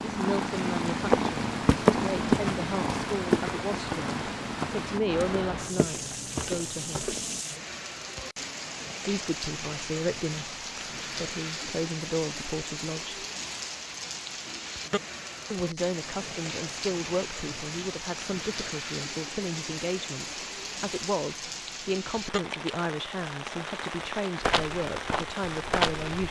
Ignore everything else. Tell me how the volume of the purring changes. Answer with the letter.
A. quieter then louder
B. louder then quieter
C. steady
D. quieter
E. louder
D.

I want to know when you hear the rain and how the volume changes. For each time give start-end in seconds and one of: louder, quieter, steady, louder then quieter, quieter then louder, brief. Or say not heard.
0.0-26.2 steady.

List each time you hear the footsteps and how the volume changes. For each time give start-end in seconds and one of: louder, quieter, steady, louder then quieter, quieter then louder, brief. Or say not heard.
1.0-7.4 quieter
24.4-26.2 brief.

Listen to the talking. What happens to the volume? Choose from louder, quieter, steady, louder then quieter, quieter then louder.
steady.